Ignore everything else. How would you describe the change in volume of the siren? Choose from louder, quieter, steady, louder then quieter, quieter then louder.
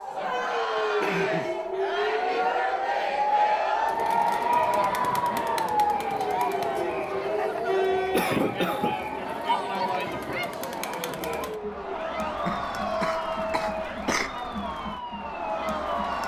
quieter.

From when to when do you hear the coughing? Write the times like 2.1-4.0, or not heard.
0.8-1.5, 8.1-8.9, 12.3-14.3.